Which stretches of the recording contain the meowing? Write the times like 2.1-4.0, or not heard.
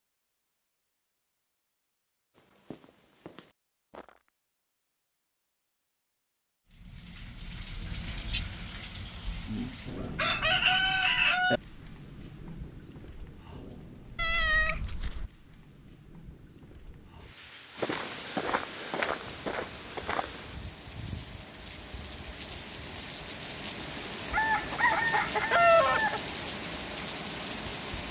14.2-15.3.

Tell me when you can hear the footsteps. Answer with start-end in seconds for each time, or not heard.
2.4-4.3, 17.8-20.6.